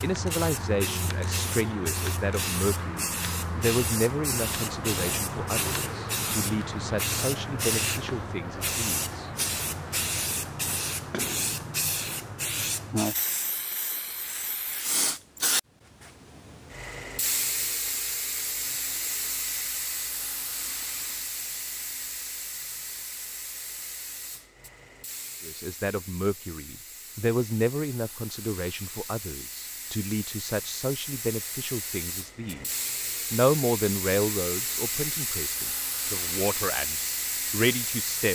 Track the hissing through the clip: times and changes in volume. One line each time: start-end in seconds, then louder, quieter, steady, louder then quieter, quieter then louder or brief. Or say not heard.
0.0-38.2 quieter then louder.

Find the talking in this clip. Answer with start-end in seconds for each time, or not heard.
0.0-9.3, 25.4-38.2.